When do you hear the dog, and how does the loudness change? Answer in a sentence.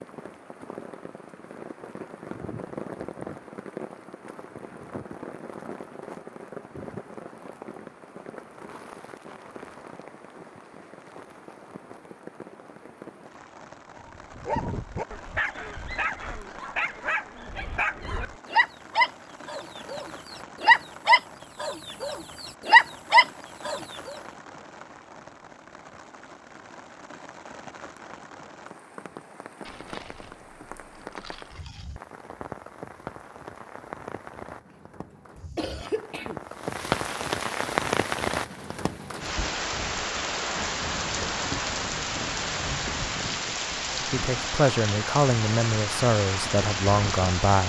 The dog can be heard from 13.9 to 24.1 s, getting louder.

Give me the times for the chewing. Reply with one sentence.
The chewing can be heard from 29.6 to 32.0 s.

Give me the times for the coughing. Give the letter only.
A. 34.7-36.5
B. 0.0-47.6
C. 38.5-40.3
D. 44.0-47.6
A.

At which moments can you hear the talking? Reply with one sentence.
The talking can be heard from 44.0 to 47.6 s.